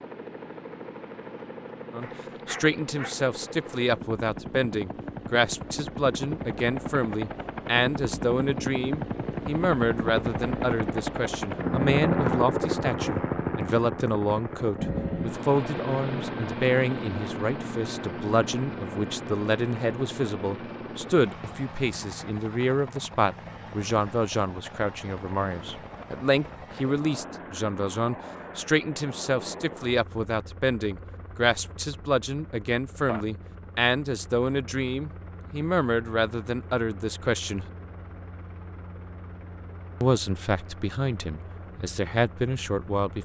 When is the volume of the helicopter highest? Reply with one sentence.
The volume of the helicopter peaks at 12 seconds.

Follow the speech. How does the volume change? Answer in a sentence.
The loudness of the speech stays about the same.